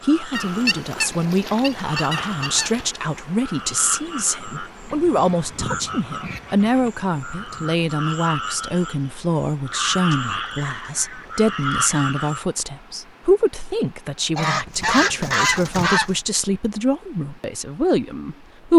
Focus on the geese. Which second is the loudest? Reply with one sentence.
The loudest moment of the geese is at 15 seconds.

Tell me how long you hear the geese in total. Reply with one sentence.
You can hear the geese for 9 seconds altogether.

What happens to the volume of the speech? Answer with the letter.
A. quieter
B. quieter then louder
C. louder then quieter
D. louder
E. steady
E.